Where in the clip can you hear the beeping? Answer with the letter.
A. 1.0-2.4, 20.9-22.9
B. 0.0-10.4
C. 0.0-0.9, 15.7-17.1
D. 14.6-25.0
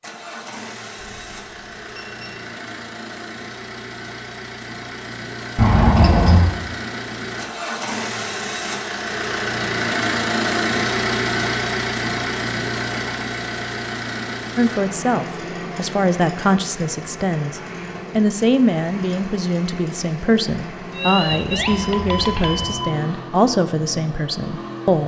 A.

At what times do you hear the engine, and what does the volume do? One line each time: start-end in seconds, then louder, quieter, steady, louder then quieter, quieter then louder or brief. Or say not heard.
0.0-25.0 louder then quieter.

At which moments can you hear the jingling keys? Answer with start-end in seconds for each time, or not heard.
5.5-6.5, 21.2-22.7.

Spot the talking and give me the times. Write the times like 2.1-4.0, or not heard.
14.6-25.0.